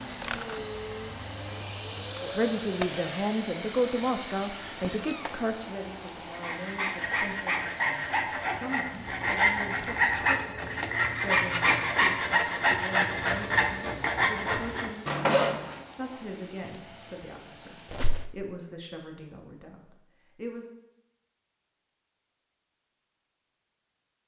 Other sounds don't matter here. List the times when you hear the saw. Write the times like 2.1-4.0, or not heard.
6.3-15.8.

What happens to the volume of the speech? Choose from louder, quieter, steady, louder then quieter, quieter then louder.
quieter.